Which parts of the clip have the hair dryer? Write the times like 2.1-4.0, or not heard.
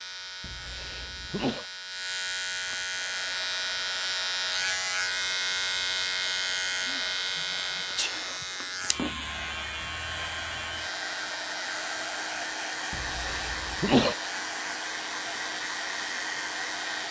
2.9-17.0.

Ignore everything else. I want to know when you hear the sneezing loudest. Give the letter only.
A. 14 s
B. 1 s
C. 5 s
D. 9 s
A.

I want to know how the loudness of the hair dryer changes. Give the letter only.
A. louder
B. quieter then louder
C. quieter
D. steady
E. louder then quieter
A.